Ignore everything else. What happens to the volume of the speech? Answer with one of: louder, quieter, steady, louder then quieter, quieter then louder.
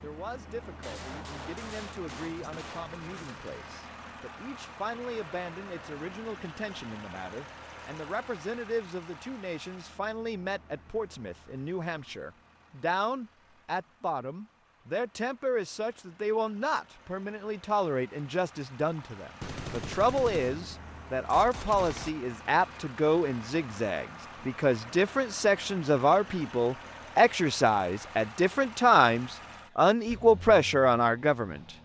louder.